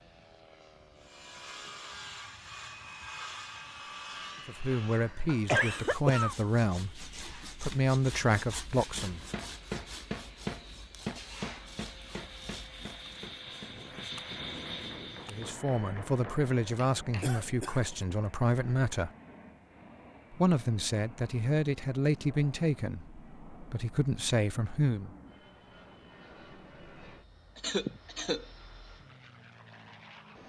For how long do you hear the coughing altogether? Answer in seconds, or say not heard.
3 s.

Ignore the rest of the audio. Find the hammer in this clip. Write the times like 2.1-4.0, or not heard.
8.9-17.3.